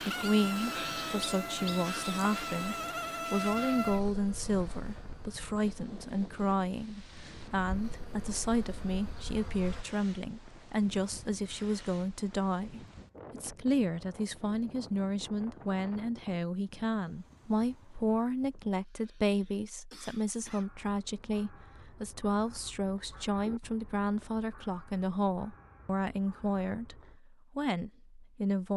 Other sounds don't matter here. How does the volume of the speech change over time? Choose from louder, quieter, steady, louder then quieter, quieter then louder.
steady.